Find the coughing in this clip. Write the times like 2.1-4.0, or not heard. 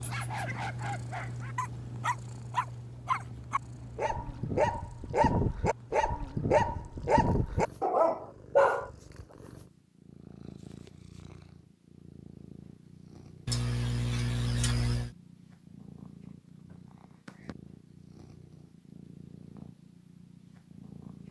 13.4-15.2.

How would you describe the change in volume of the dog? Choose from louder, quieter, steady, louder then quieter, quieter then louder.
louder.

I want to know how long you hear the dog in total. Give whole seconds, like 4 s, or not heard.
9 s.